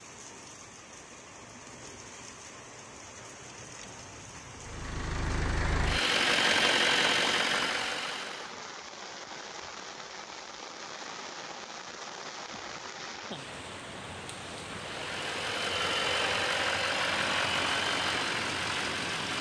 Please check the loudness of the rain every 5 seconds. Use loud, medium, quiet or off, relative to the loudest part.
medium, loud, loud, loud.